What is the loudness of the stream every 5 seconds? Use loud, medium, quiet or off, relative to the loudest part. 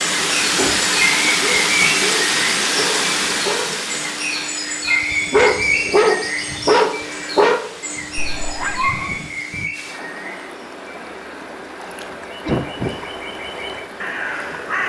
loud, quiet, quiet.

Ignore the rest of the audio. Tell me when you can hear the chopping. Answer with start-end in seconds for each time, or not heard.
not heard.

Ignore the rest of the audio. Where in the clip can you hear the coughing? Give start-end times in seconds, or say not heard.
12.4-13.0.